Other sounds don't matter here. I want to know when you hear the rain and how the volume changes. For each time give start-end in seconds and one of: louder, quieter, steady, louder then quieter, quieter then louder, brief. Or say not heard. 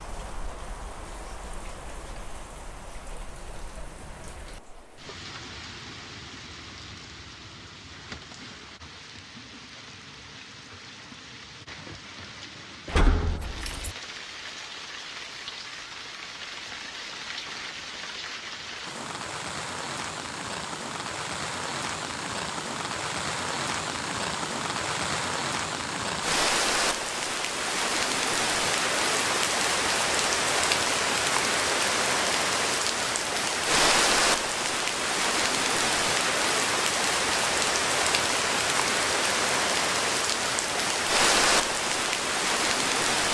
0.0-43.2 louder.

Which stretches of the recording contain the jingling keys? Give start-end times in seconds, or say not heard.
12.8-13.9.